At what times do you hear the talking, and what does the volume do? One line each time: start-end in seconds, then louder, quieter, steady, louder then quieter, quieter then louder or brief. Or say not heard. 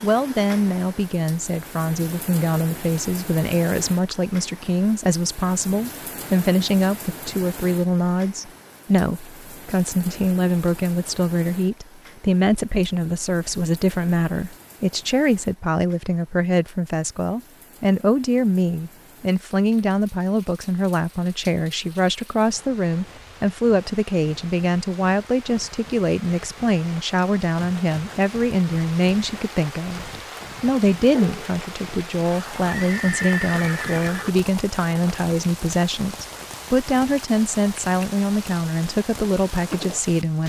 0.0-40.4 steady.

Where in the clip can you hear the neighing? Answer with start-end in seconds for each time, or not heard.
32.6-34.3.